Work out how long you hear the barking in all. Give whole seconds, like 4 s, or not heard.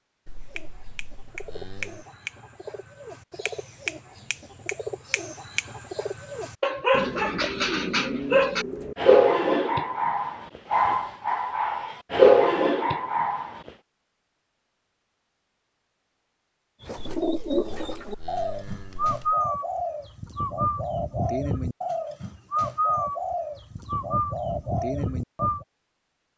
7 s.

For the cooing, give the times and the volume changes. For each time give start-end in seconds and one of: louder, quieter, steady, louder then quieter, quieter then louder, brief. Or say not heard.
0.4-8.9 louder
16.8-25.6 steady.